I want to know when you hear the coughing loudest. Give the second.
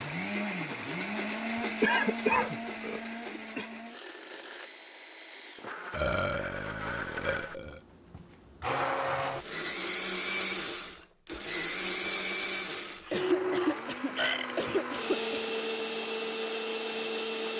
2 s.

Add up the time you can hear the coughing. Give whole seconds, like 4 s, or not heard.
4 s.